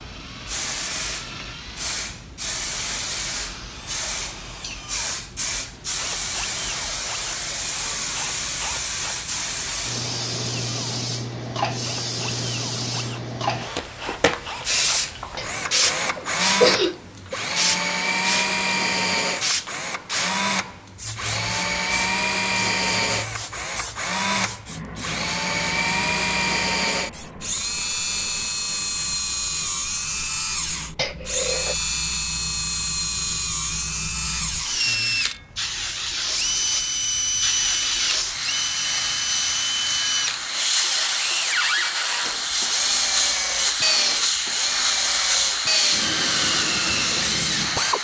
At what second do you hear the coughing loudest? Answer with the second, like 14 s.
17 s.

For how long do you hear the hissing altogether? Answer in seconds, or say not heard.
48 s.